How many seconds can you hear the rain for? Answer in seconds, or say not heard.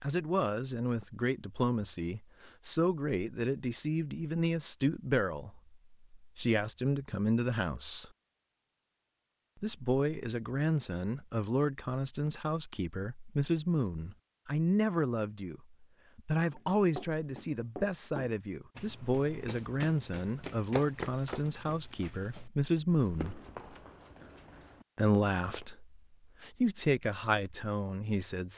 not heard.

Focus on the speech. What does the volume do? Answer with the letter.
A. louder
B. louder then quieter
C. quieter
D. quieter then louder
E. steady
E.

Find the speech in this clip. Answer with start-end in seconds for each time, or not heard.
0.0-8.1, 9.6-23.4, 24.9-28.5.